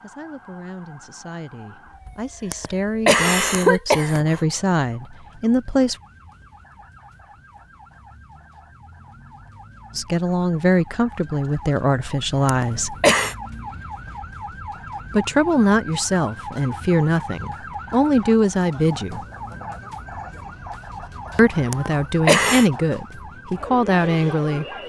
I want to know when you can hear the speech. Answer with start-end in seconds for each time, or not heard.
0.0-6.0, 9.9-12.9, 15.1-19.2, 21.4-24.6.